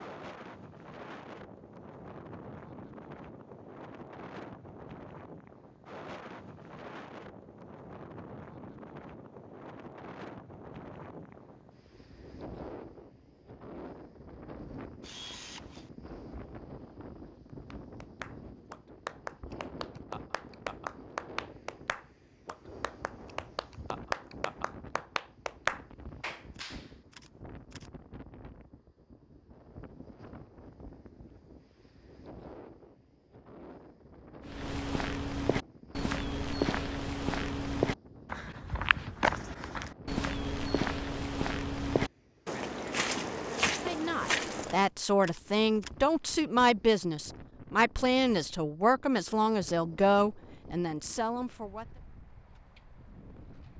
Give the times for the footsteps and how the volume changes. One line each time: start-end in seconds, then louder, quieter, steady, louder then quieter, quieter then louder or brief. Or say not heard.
34.5-44.9 steady.